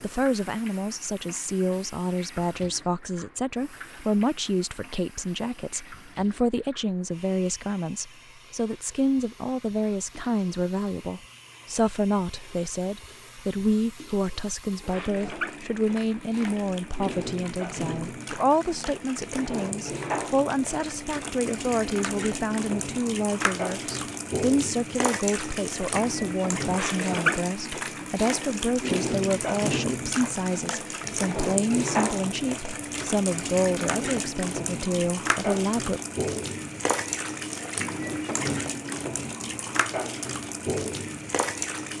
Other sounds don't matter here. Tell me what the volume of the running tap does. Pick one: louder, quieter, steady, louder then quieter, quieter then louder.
louder.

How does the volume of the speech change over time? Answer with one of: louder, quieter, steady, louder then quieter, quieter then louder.
steady.